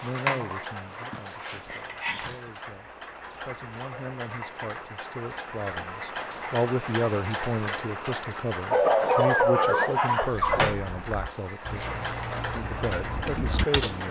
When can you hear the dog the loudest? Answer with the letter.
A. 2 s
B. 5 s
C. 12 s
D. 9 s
D.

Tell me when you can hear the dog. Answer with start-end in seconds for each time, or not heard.
1.1-2.5, 8.7-10.7.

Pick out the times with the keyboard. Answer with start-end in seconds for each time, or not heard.
10.3-14.0.